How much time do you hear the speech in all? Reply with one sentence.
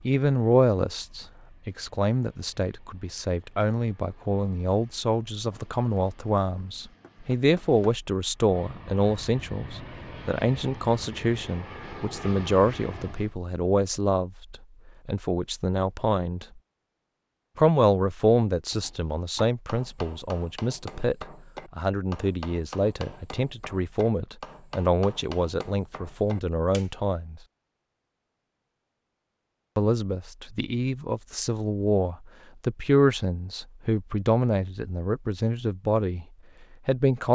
The speech can be heard for 33 seconds in total.